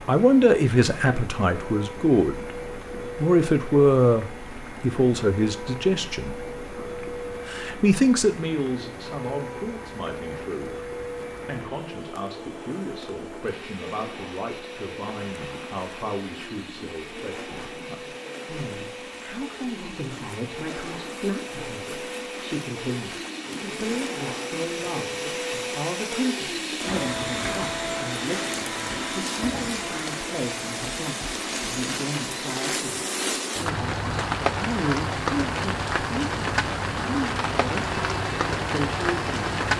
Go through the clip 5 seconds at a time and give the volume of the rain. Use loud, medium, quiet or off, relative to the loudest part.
quiet, quiet, quiet, quiet, quiet, medium, loud, loud.